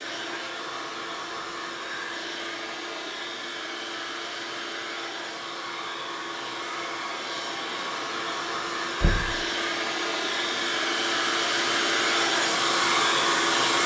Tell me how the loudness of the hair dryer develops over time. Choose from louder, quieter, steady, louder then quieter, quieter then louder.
louder.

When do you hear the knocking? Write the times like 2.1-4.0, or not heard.
9.0-9.4.